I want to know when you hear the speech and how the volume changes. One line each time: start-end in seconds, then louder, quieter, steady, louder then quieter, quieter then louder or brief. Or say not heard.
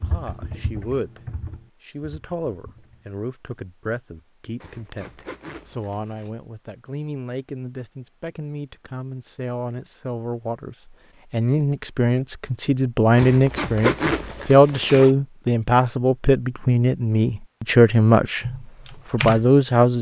0.0-1.2 brief
1.8-18.4 louder
19.1-19.9 brief.